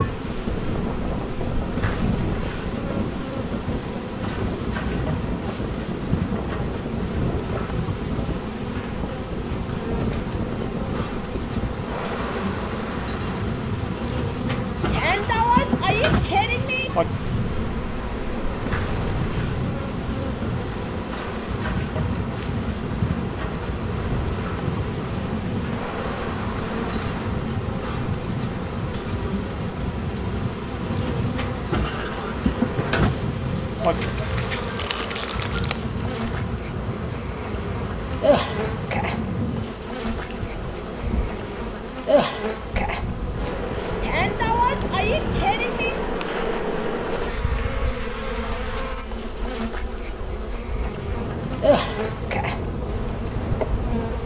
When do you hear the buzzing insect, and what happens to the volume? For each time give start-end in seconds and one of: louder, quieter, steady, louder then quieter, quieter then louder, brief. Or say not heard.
0.0-54.2 steady.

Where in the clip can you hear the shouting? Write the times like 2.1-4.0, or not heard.
14.9-16.9, 44.0-46.0.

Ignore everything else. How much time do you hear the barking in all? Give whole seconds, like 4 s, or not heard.
not heard.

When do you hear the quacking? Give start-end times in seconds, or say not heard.
not heard.